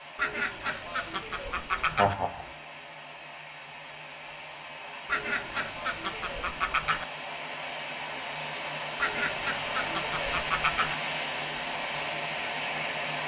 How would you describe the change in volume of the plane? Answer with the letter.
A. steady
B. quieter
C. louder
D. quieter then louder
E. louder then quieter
C.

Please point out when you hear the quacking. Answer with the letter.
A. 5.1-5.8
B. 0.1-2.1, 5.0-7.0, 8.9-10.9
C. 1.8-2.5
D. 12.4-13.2
B.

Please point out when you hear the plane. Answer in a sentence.
You can hear the plane from 0.0 to 13.2 s.